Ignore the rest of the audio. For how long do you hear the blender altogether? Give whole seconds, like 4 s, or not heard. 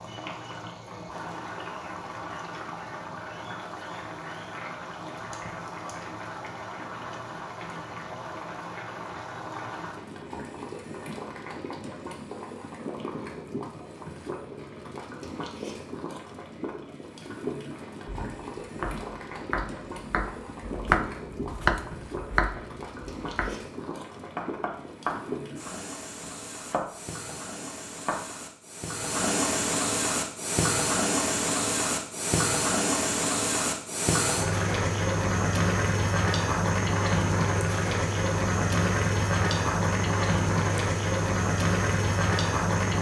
not heard.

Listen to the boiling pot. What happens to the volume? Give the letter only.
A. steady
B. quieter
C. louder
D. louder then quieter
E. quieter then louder
C.